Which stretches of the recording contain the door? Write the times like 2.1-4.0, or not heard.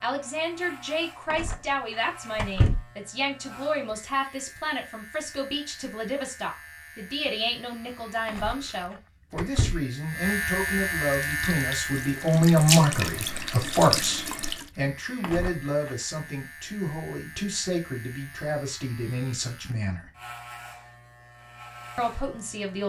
1.3-2.9, 8.2-9.8, 15.2-15.9.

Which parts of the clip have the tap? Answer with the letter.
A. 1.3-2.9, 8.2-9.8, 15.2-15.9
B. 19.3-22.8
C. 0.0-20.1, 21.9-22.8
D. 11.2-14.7
D.